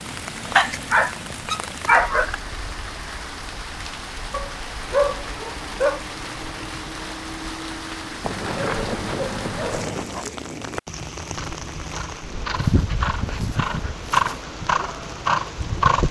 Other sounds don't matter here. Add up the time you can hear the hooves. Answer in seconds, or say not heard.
5 s.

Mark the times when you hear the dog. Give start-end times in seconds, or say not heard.
0.6-2.4, 4.3-6.0, 8.2-10.2, 12.6-14.3.